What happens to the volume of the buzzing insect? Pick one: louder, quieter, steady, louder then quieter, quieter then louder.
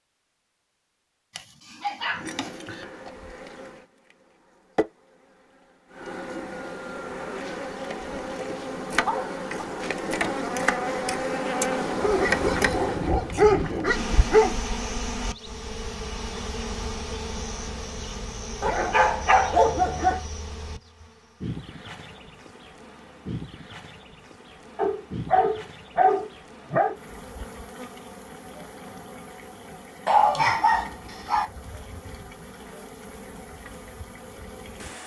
louder then quieter.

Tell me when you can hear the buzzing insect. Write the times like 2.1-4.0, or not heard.
2.0-35.0.